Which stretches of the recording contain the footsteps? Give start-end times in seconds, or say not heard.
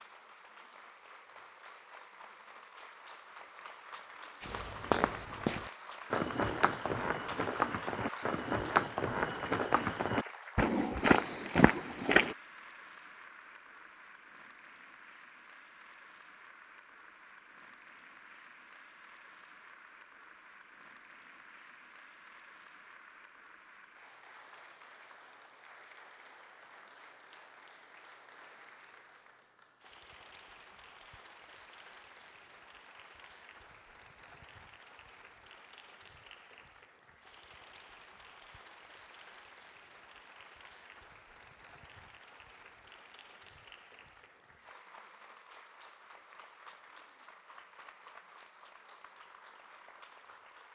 4.4-12.3.